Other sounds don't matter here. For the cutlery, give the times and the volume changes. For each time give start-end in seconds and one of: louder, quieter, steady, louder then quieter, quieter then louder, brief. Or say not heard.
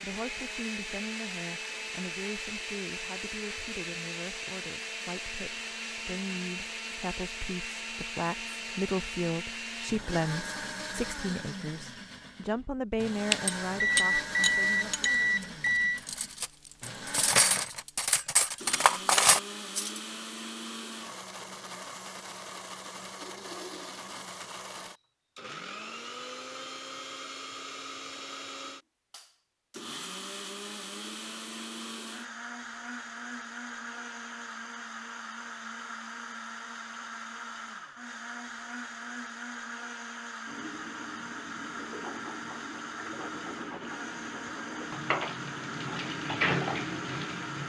13.4-20.0 quieter then louder.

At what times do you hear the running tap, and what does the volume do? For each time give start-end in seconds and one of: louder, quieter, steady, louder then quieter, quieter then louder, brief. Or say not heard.
40.5-47.6 louder.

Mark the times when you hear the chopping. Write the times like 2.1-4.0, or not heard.
not heard.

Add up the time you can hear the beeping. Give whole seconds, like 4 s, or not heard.
3 s.